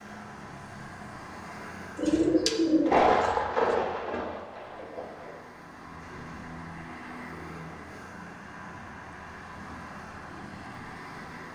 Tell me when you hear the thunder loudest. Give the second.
3 s.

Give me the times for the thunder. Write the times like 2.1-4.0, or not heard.
2.8-5.3.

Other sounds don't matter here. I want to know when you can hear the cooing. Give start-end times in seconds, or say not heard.
1.9-3.8.